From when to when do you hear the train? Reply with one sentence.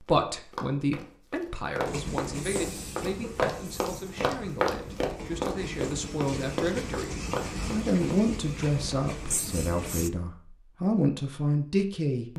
You can hear the train from 1.9 to 10.1 s.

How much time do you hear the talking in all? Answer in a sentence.
The talking can be heard for 12 seconds in total.